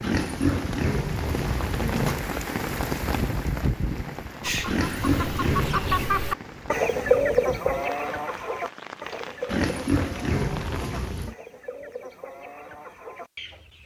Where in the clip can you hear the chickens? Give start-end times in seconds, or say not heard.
4.4-13.8.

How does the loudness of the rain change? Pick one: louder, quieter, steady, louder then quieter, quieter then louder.
quieter.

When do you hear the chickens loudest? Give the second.
7 s.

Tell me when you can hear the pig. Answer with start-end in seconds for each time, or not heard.
0.0-2.2, 4.7-6.2, 9.4-11.3.